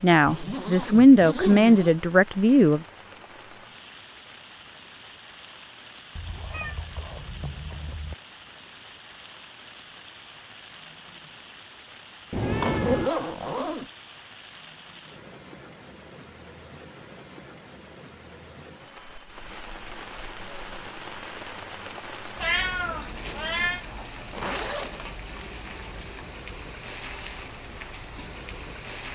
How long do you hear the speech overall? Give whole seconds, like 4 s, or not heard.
3 s.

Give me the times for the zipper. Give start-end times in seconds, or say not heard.
0.2-1.9, 12.3-13.8, 24.3-25.1.